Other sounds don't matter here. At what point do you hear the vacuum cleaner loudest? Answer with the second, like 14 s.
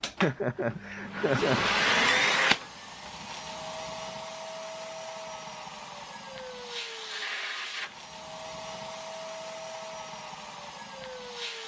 2 s.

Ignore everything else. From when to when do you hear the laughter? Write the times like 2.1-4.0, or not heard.
0.2-1.7.